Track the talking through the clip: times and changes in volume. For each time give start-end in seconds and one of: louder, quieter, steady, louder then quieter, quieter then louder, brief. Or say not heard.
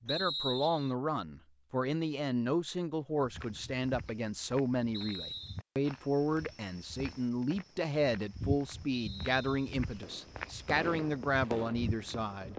0.0-12.5 steady.